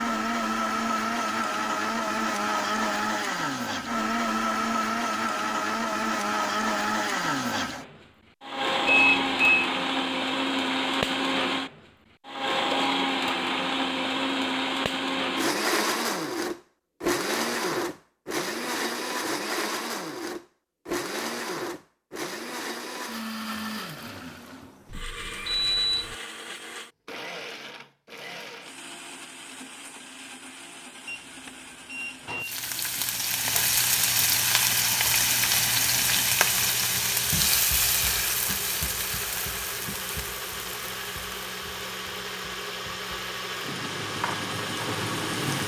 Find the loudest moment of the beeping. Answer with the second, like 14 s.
9 s.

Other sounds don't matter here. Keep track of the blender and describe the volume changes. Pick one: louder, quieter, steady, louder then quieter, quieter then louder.
quieter then louder.